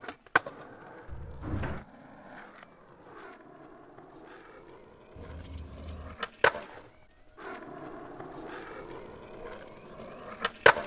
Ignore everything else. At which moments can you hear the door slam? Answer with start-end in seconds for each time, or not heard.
1.1-1.9.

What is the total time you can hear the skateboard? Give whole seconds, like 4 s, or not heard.
11 s.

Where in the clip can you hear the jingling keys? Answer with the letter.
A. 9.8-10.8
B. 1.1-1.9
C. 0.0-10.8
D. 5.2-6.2
D.